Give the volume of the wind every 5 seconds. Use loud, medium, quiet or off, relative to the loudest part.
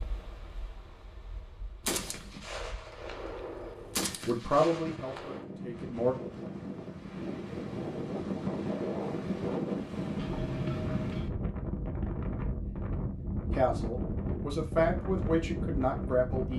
quiet, loud, loud, loud.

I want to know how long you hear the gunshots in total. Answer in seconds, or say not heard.
4 s.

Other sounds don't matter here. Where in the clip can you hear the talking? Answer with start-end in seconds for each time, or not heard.
4.2-6.2, 13.5-16.5.